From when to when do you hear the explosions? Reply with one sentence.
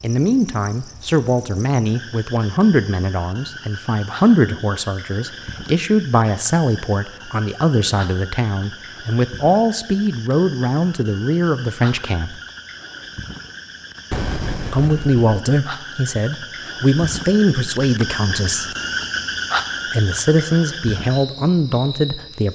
The explosions can be heard from 14.1 to 15.2 s.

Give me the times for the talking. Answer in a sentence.
The talking can be heard from 0.0 to 12.4 s, from 14.7 to 18.8 s and from 19.9 to 22.5 s.